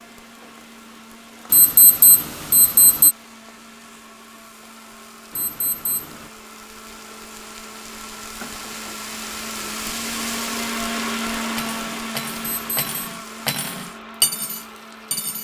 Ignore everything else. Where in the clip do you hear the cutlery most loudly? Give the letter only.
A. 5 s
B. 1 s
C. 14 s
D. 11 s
C.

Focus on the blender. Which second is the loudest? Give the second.
11 s.